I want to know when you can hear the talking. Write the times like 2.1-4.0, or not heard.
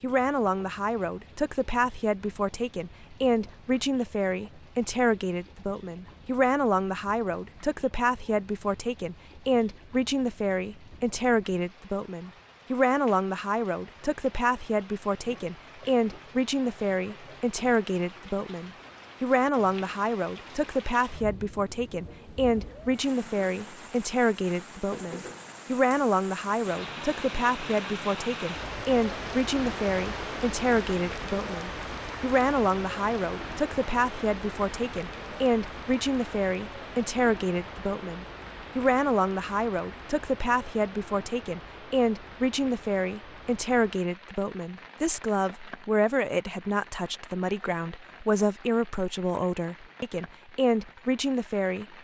0.0-51.9.